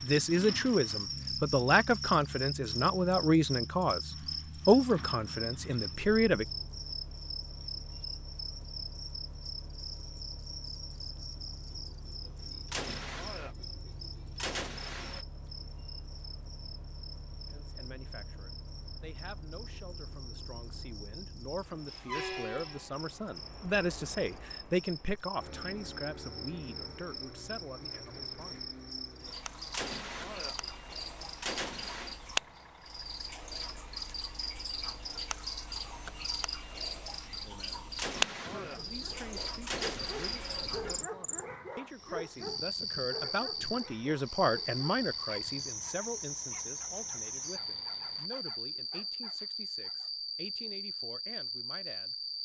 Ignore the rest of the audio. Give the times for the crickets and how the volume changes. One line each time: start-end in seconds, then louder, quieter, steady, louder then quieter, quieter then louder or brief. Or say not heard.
0.0-52.3 quieter then louder.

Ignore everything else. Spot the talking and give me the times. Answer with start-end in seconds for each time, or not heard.
0.0-6.5, 17.5-28.6, 37.4-52.1.